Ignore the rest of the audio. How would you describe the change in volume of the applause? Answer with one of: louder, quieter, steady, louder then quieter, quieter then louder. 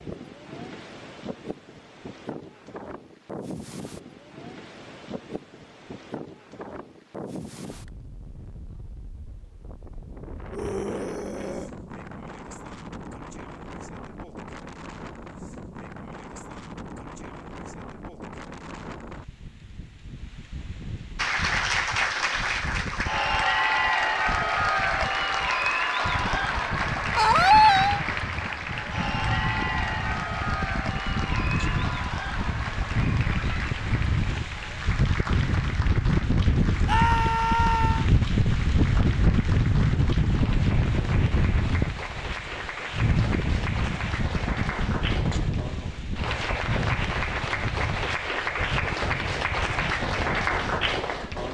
quieter then louder.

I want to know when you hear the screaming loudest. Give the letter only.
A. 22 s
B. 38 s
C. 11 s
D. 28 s
D.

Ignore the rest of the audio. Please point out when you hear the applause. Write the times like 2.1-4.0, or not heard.
21.1-51.4.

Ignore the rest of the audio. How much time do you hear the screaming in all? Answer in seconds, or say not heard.
3 s.